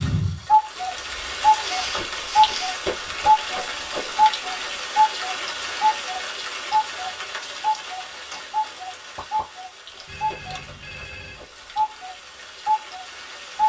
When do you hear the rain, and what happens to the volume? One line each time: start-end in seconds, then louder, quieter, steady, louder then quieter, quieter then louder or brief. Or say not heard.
0.0-13.6 quieter.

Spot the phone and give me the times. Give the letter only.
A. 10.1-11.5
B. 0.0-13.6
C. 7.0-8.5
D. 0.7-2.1
A.